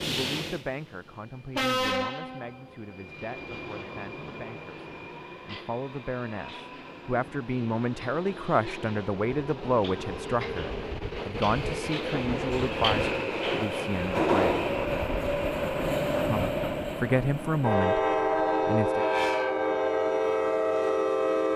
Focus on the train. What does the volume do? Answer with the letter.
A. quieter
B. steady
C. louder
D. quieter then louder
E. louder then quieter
D.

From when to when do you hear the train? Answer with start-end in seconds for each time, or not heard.
0.0-21.5.